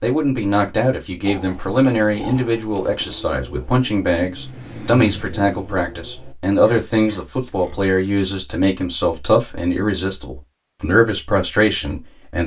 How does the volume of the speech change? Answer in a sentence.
The loudness of the speech stays about the same.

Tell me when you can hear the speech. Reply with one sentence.
The speech can be heard from 0.0 to 12.4 s.